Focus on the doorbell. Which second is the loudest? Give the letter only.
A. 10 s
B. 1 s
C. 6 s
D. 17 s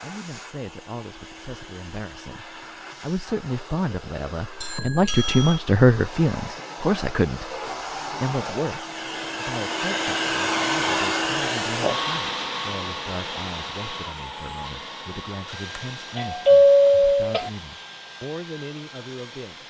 D.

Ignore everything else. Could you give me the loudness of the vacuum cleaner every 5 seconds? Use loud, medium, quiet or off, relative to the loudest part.
quiet, medium, loud, quiet.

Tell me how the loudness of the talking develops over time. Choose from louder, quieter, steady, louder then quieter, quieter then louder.
louder then quieter.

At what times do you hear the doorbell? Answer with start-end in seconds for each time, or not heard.
4.6-5.6, 15.8-17.5.